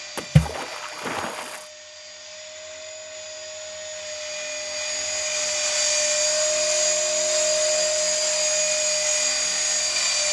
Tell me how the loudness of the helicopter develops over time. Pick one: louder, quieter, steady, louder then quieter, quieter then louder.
louder.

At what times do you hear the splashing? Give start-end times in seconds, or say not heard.
0.1-1.7.